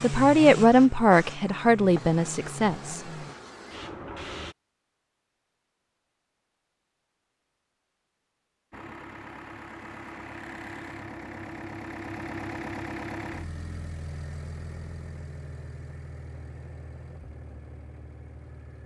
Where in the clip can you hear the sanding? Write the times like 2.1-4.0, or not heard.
not heard.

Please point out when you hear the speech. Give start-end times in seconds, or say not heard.
0.0-3.0.